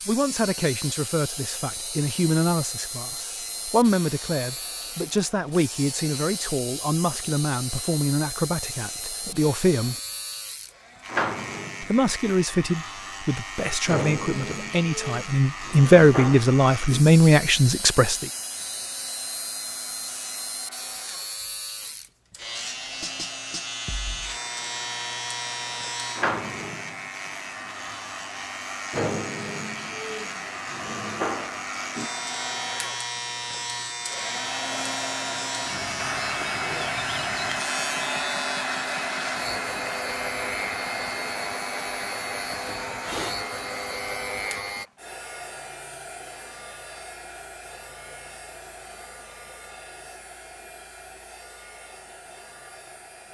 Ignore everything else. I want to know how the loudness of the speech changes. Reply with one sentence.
The loudness of the speech goes up.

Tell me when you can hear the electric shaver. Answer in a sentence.
The electric shaver can be heard from 0.0 to 44.9 s.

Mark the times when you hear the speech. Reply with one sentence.
The speech can be heard from 0.1 to 9.9 s and from 11.8 to 18.3 s.